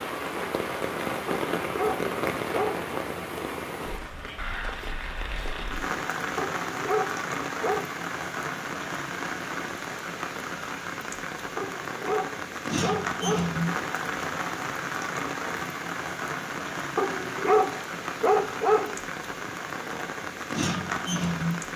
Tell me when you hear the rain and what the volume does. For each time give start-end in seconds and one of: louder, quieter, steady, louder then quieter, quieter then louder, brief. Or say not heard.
0.0-21.7 steady.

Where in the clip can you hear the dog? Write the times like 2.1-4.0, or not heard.
1.2-2.9, 6.3-7.8, 11.6-13.6, 16.9-18.9.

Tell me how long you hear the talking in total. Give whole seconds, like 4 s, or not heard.
not heard.